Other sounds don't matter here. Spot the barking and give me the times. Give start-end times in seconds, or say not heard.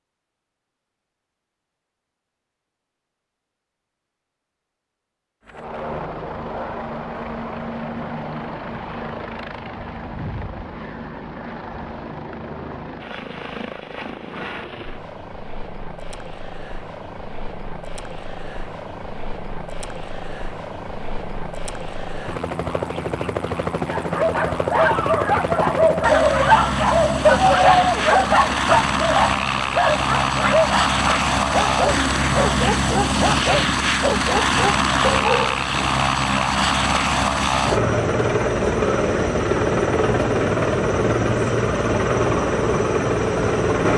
23.9-36.0.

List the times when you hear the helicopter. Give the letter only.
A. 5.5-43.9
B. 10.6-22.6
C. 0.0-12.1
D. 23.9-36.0
A.